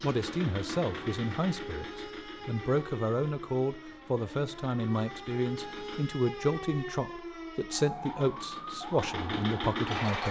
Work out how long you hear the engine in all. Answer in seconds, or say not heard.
8 s.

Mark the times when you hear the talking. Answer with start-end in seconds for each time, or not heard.
0.0-10.2.